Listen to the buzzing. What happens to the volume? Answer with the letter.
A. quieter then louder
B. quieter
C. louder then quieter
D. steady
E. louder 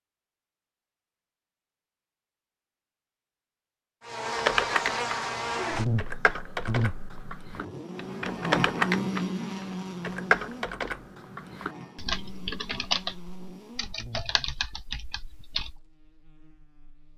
B.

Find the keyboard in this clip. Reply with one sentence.
You can hear the keyboard from 4.3 to 15.8 s.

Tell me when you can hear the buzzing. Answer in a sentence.
You can hear the buzzing from 4.0 to 17.1 s.